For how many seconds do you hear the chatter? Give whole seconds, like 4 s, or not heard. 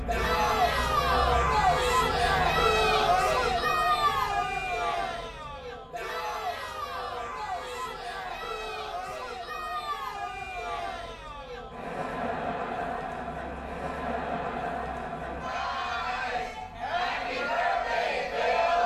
19 s.